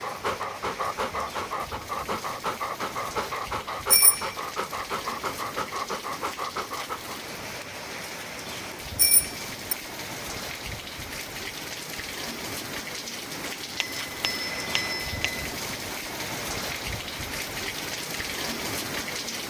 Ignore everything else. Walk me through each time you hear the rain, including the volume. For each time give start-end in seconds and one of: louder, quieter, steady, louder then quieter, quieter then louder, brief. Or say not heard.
0.0-19.4 louder.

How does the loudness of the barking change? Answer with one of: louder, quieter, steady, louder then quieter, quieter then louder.
steady.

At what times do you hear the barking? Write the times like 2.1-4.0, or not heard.
0.0-7.2.